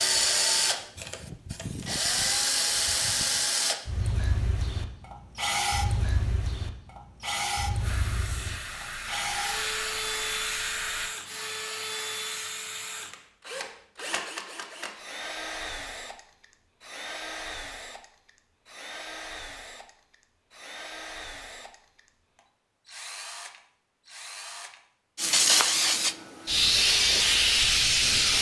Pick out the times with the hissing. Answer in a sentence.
You can hear the hissing from 0.0 to 3.5 s, from 7.8 to 11.2 s and from 25.1 to 28.3 s.